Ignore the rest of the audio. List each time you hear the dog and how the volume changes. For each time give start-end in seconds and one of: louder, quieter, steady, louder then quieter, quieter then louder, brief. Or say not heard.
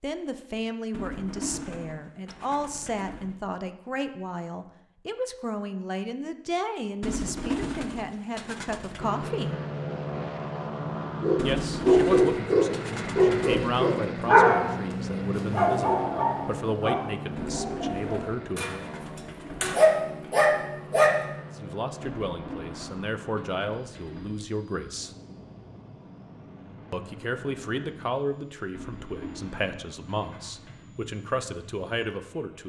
11.2-21.1 quieter then louder.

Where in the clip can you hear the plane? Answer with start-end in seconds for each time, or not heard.
8.9-32.6.